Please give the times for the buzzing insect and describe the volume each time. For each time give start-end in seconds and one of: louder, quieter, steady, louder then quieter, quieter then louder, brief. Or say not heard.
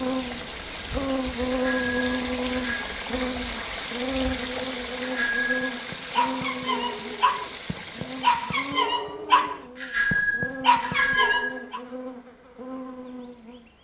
0.0-13.7 quieter.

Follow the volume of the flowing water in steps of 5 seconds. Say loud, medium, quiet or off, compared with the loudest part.
loud, loud, off.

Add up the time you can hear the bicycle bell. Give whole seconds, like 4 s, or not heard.
4 s.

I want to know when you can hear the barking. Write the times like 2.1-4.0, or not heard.
5.6-11.8.